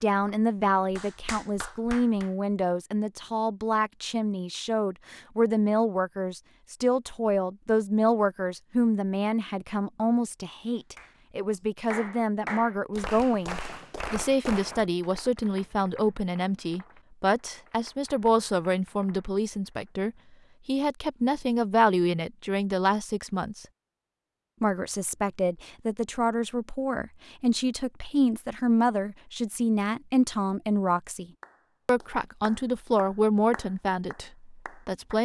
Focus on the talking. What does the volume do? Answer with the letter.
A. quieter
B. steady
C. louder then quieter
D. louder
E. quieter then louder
B.